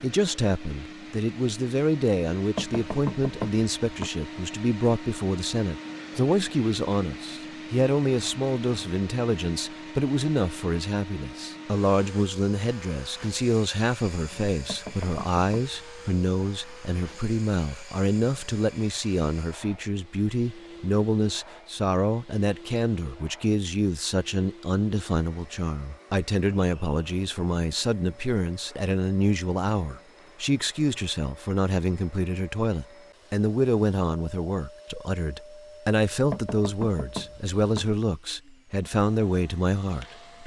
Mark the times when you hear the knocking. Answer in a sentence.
The knocking can be heard from 2.5 to 4.1 s, from 14.7 to 16.1 s and from 36.3 to 37.9 s.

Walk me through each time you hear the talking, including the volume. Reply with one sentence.
You can hear the talking from 0.0 to 40.4 s, at a steady volume.